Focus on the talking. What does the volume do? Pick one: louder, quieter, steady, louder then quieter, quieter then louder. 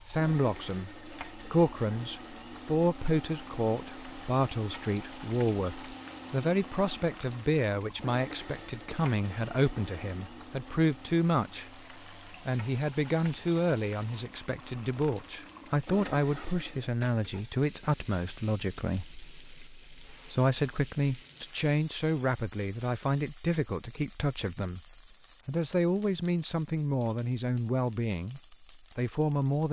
steady.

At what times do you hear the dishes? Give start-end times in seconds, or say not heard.
not heard.